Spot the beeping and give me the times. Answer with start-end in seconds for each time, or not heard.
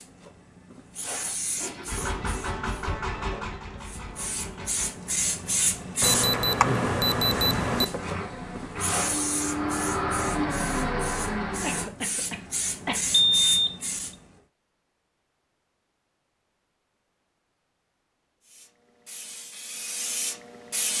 6.0-7.8, 13.1-13.8.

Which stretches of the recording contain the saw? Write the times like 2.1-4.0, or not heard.
not heard.